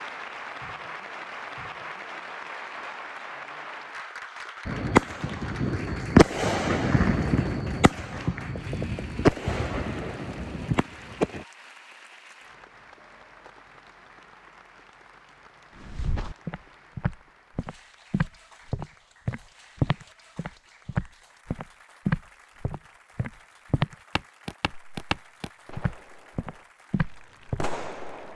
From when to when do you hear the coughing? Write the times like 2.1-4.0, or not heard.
not heard.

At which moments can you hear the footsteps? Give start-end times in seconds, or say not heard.
15.8-27.6.